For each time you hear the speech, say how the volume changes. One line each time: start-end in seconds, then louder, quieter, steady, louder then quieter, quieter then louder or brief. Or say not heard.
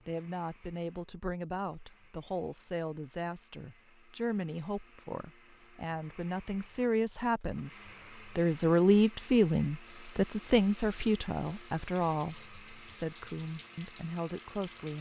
0.1-14.9 louder then quieter.